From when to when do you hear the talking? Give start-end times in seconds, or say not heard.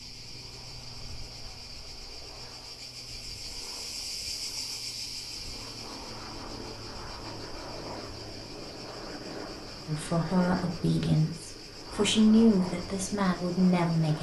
9.8-14.1.